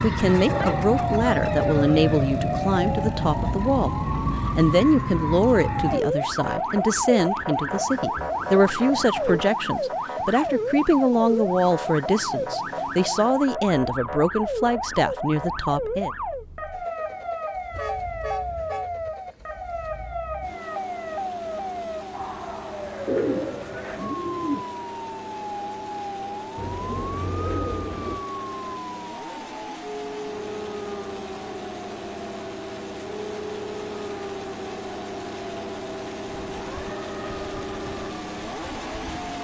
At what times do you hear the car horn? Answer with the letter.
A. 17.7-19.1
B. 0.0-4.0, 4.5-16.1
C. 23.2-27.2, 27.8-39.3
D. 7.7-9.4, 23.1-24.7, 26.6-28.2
A.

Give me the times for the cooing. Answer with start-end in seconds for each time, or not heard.
7.7-9.4, 23.1-24.7, 26.6-28.2.